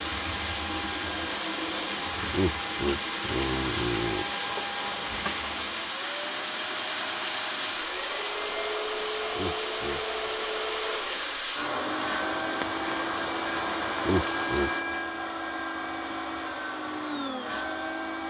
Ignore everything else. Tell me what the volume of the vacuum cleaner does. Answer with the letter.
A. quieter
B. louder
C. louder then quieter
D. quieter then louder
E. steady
E.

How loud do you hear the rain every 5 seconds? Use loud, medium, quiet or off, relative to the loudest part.
loud, loud, loud, off.